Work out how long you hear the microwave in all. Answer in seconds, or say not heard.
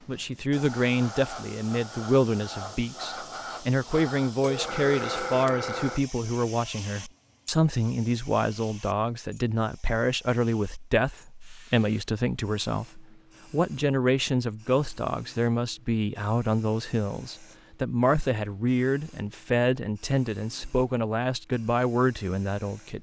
not heard.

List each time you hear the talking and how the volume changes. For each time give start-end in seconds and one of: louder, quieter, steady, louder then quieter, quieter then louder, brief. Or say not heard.
0.1-22.9 steady.